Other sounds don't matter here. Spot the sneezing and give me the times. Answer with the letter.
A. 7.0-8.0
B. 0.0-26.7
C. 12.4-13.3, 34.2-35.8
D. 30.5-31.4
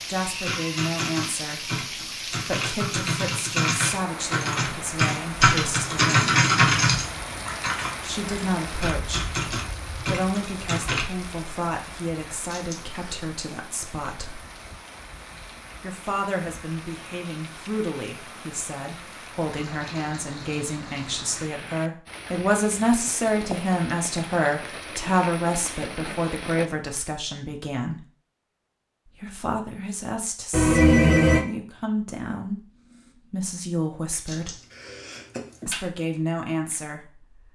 C.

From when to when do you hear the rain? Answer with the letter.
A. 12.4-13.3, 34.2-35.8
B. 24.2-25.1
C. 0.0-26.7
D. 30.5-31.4
C.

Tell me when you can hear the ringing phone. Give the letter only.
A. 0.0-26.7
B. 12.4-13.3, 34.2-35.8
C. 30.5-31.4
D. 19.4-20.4
C.